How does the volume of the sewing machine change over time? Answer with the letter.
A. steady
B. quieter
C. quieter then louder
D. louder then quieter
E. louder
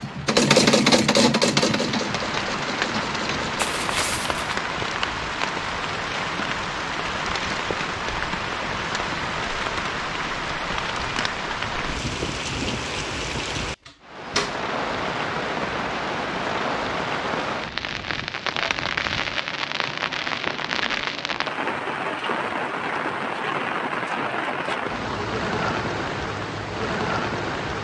B.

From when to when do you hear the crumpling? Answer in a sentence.
The crumpling can be heard from 3.5 to 4.5 s.